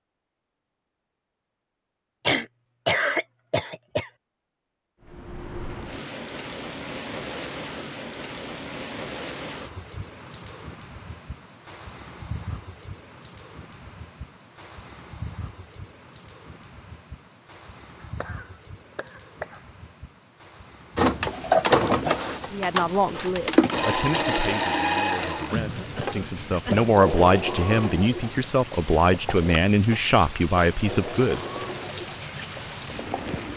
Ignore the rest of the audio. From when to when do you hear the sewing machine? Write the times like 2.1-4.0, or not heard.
20.9-33.5.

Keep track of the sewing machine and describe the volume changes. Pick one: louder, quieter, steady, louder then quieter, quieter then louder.
quieter.